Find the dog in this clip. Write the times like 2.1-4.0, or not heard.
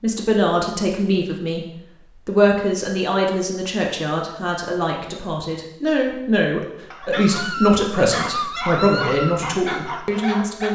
6.9-10.7.